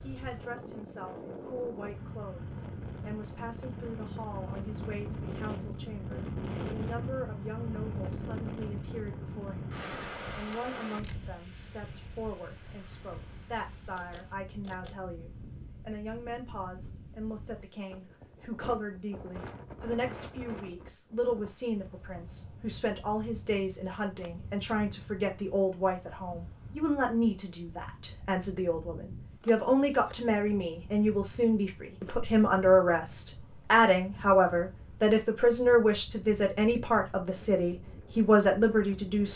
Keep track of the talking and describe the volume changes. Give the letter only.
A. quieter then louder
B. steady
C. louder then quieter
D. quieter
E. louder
E.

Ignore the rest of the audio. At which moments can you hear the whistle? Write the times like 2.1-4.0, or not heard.
not heard.